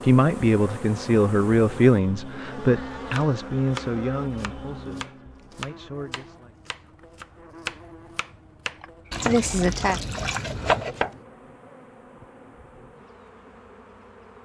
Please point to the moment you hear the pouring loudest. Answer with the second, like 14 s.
11 s.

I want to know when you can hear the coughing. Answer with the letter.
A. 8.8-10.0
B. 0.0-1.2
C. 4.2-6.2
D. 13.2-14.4
A.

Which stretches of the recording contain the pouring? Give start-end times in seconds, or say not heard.
9.1-11.0.